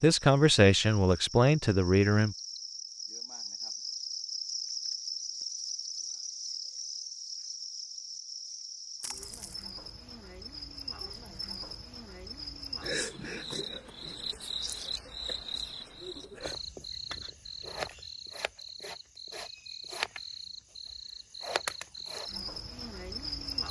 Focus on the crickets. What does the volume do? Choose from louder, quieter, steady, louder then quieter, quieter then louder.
steady.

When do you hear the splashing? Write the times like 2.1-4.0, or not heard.
9.0-9.7.